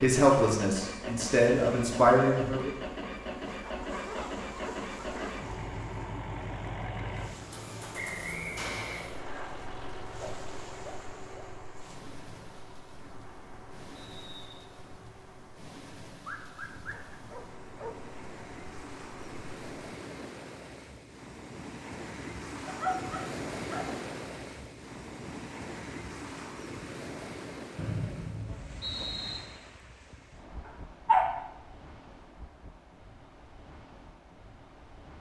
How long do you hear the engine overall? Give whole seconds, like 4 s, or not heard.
20 s.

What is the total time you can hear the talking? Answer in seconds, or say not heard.
3 s.